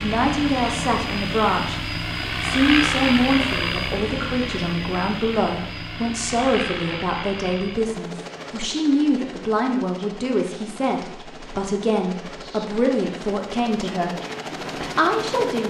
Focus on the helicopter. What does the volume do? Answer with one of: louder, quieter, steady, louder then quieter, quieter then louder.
quieter then louder.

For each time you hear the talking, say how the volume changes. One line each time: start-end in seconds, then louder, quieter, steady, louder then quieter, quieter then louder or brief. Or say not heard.
0.0-1.8 brief
2.4-14.2 steady
14.8-15.6 brief.